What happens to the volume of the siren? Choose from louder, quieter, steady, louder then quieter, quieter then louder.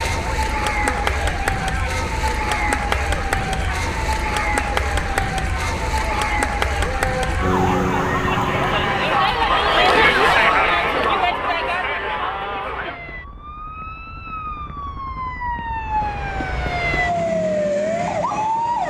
quieter then louder.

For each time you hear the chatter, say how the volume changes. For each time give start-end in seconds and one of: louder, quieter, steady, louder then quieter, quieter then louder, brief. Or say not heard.
0.0-13.0 louder.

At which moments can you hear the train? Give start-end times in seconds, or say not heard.
not heard.